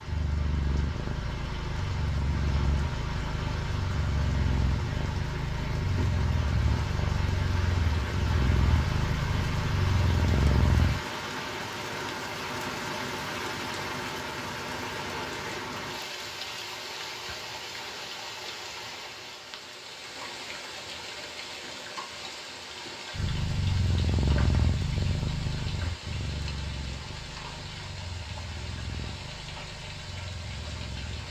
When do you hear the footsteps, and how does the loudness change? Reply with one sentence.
The footsteps can't be heard in this clip.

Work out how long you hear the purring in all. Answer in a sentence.
The purring can be heard for 19 seconds in total.